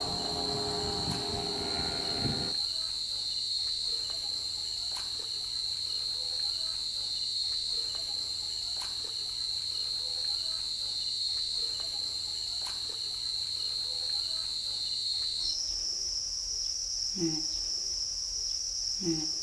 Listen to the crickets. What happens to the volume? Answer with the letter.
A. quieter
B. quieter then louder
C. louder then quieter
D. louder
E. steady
E.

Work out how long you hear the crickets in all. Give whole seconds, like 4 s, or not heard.
19 s.